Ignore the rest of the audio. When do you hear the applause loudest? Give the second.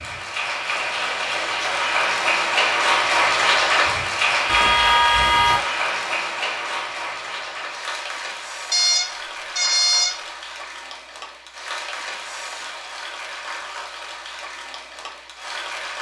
3 s.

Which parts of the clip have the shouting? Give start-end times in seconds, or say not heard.
not heard.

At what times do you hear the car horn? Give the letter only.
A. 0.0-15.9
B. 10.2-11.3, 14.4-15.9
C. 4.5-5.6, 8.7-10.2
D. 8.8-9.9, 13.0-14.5
C.